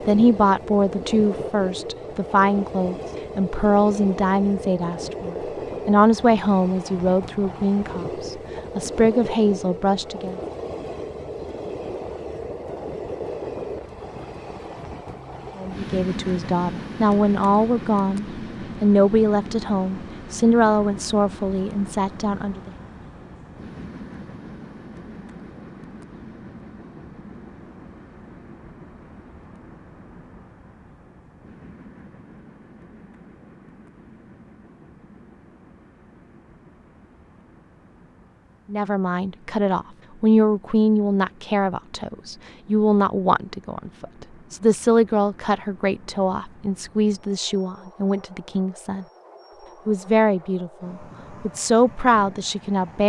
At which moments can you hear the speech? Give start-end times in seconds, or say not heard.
0.1-10.4, 15.6-22.7, 38.7-49.0, 49.9-53.0.